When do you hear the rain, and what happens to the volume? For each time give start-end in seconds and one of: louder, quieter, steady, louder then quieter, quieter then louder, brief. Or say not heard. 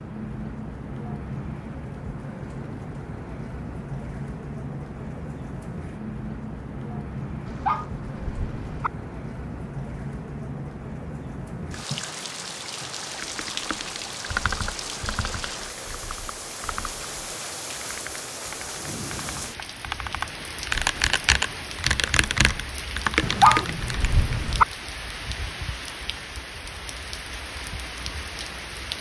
0.0-28.9 steady.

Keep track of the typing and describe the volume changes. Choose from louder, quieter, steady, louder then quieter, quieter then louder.
quieter then louder.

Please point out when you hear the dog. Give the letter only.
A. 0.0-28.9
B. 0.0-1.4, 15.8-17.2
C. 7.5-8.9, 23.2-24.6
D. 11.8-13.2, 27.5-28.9
C.